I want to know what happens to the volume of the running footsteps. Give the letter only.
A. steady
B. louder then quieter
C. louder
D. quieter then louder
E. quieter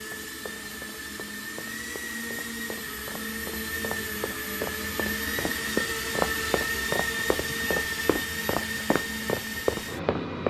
C.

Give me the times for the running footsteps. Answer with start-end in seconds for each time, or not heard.
0.0-10.4.